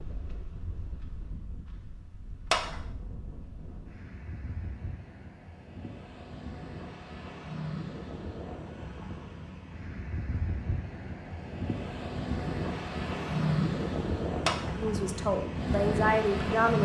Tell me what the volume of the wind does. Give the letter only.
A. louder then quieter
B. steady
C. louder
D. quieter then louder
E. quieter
C.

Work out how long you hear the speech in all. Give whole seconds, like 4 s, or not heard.
2 s.